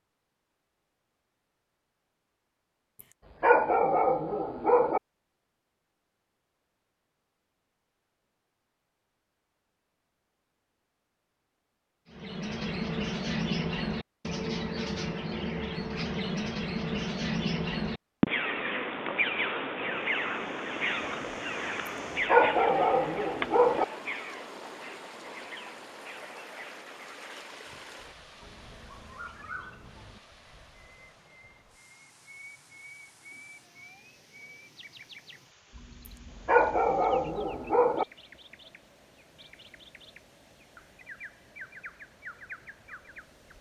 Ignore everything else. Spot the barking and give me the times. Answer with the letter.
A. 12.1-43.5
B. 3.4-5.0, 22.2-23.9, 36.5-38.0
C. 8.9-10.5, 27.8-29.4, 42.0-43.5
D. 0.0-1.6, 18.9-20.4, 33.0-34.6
B.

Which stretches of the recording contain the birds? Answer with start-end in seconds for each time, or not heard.
12.1-43.5.